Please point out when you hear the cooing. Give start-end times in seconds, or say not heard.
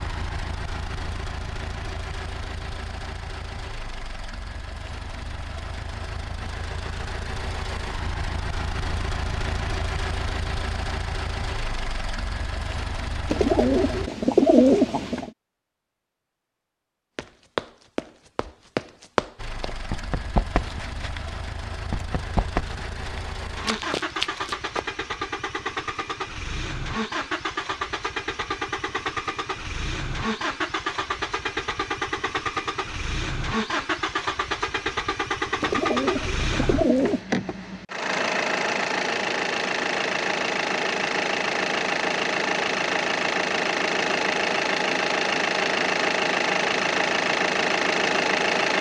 13.3-15.3, 35.6-37.2.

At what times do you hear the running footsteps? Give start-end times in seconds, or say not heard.
17.1-24.9.